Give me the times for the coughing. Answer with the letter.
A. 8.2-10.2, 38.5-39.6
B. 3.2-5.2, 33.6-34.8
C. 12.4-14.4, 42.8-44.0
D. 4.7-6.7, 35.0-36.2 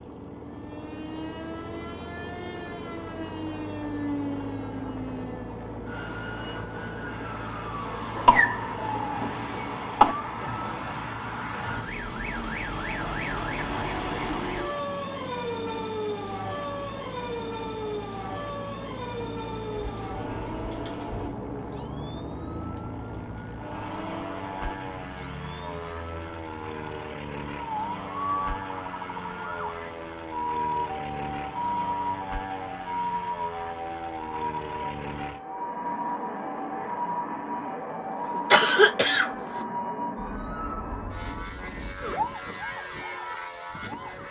A.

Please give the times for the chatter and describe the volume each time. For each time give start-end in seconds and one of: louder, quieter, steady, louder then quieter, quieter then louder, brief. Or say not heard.
not heard.